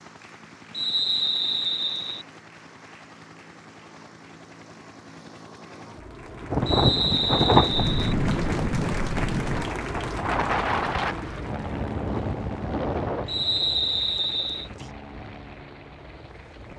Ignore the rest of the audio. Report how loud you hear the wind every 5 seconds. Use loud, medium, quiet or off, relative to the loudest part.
off, loud, medium, quiet.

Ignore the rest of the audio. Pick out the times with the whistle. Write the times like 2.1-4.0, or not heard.
0.7-2.2, 6.7-8.2, 13.2-14.7.